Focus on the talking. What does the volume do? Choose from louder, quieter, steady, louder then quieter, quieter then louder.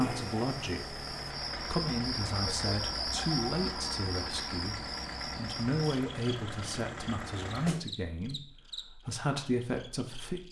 steady.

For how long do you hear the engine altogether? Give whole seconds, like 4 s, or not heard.
8 s.